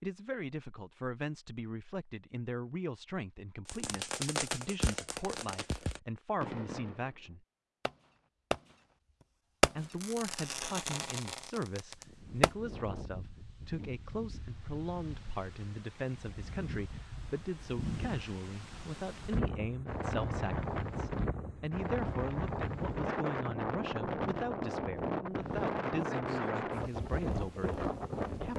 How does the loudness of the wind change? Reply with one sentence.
The loudness of the wind goes up.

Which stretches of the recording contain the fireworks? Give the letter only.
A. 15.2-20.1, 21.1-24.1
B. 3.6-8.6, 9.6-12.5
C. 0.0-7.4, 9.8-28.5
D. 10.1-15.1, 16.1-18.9
B.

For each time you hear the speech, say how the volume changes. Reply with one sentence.
You can hear the speech from 0.0 to 7.4 s, at a steady volume; and from 9.8 to 28.5 s, at a steady volume.